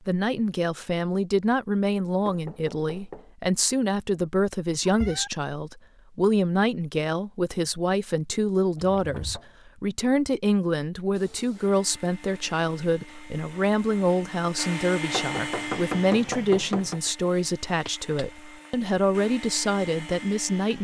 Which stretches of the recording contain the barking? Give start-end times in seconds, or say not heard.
not heard.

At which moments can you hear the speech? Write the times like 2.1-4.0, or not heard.
0.1-20.7.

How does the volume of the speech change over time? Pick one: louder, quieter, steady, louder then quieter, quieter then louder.
steady.